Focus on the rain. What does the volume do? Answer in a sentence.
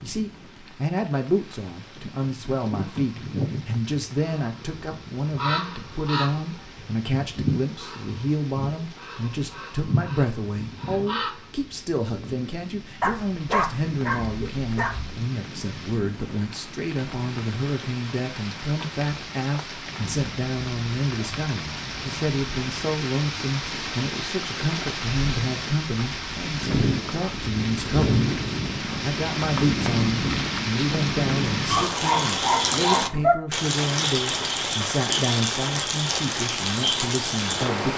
The loudness of the rain goes up.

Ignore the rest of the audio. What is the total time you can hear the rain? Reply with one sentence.
You can hear the rain for 38 seconds altogether.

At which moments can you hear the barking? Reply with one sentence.
You can hear the barking from 13.0 to 15.2 s and from 31.6 to 33.4 s.